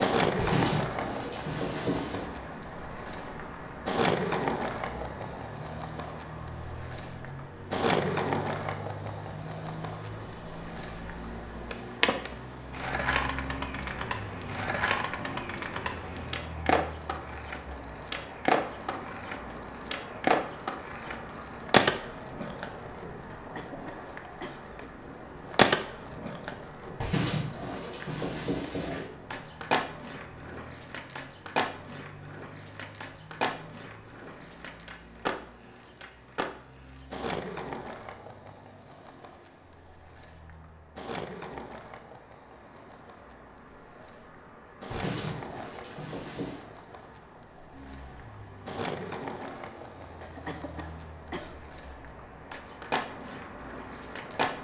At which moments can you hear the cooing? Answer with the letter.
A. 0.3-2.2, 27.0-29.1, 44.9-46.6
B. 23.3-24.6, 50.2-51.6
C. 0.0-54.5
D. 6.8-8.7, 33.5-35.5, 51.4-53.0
A.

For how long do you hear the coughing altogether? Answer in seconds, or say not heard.
3 s.